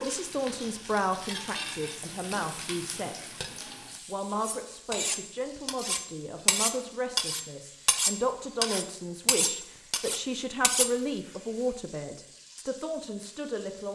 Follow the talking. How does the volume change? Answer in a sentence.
The loudness of the talking stays about the same.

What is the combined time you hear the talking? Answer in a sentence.
You can hear the talking for 13 seconds altogether.